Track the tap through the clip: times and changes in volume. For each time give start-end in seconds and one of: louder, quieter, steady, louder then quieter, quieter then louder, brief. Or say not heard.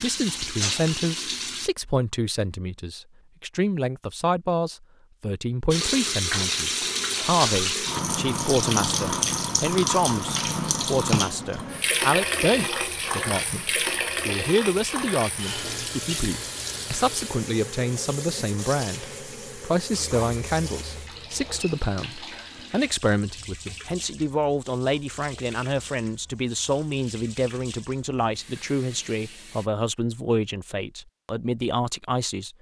0.0-1.7 brief
5.7-29.7 quieter.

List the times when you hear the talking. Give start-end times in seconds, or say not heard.
0.0-32.5.